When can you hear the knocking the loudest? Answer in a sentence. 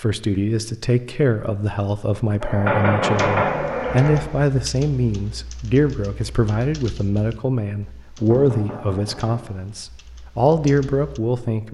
The volume of the knocking peaks at 3 seconds.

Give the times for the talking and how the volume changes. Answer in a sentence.
You can hear the talking from 0.0 to 11.6 s, at a steady volume.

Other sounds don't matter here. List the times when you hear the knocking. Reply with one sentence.
You can hear the knocking from 2.4 to 4.2 s and from 8.2 to 9.5 s.